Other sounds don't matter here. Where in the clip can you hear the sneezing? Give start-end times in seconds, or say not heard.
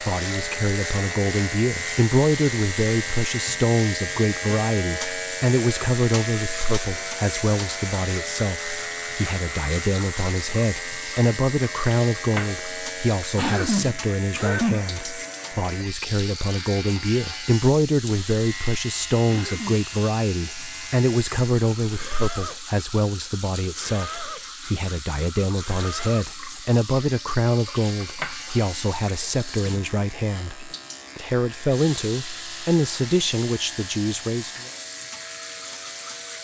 13.3-14.8, 19.2-19.9.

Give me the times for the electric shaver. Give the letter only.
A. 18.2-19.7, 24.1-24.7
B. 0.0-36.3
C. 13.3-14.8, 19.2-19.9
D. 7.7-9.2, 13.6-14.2
B.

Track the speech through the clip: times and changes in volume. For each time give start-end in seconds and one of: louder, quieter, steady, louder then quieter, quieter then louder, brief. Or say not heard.
0.0-34.5 steady.